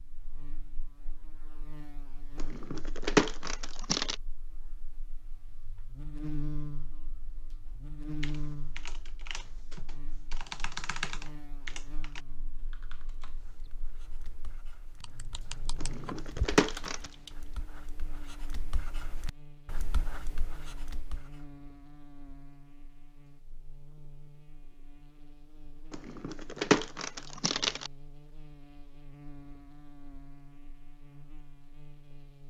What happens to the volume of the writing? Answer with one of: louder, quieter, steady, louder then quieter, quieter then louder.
louder.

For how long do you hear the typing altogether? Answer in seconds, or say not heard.
9 s.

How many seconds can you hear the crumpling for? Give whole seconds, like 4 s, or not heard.
5 s.